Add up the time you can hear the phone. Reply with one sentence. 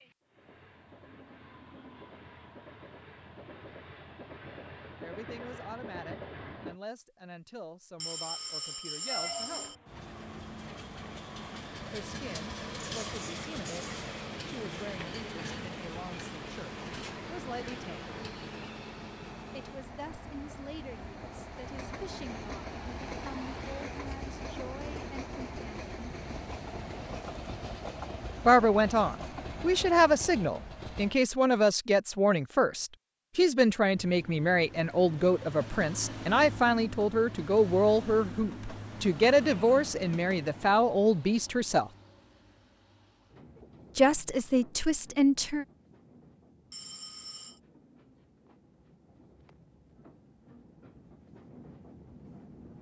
The phone can be heard for 3 seconds in total.